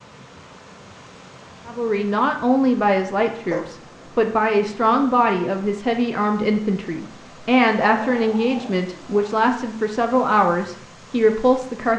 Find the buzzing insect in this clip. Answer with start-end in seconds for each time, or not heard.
not heard.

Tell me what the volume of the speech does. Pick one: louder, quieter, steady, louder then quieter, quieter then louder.
steady.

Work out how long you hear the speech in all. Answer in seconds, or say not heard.
10 s.